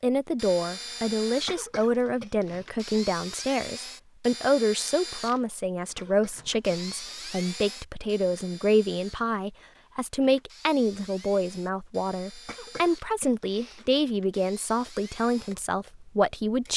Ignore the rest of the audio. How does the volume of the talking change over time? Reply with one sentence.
The volume of the talking stays about the same.